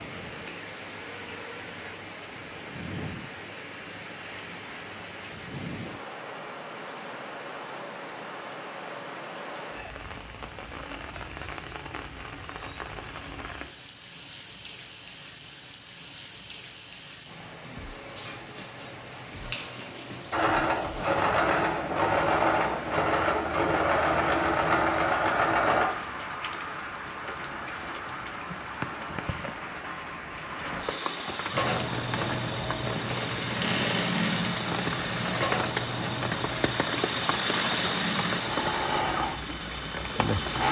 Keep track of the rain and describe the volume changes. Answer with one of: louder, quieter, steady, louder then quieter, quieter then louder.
louder.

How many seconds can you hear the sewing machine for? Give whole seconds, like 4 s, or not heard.
15 s.